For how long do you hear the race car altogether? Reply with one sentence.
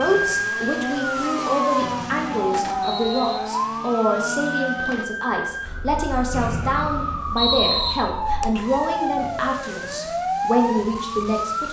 The race car can be heard for 5 seconds in total.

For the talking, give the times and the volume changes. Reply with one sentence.
The talking can be heard from 0.0 to 11.6 s, at a steady volume.